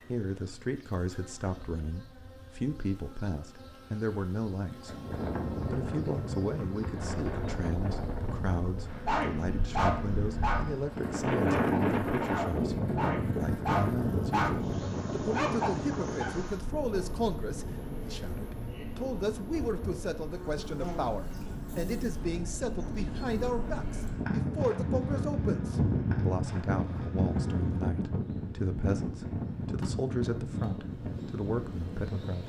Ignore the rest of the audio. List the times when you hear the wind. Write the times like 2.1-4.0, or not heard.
4.8-32.4.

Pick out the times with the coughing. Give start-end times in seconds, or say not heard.
not heard.